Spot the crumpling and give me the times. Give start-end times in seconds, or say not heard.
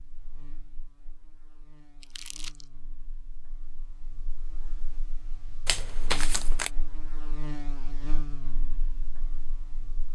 2.0-2.6, 5.7-6.7.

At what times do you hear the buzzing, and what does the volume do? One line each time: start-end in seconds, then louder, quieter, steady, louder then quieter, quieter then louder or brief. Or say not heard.
0.0-10.1 louder.